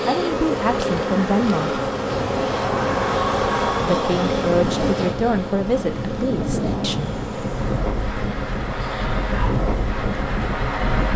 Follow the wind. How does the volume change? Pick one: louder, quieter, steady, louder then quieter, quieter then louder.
louder.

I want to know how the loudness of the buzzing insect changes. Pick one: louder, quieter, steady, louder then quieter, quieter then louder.
quieter.